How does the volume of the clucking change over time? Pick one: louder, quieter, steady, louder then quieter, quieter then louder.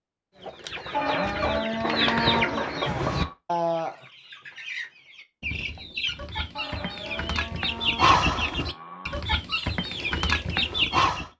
quieter then louder.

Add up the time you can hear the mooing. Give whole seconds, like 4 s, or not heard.
5 s.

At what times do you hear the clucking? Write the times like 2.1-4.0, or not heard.
0.4-11.3.